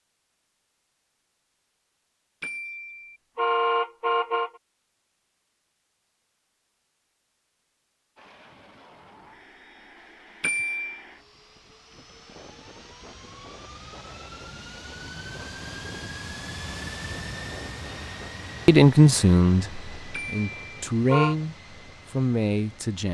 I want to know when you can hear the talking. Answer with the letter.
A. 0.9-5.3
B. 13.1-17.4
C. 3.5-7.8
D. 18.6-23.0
D.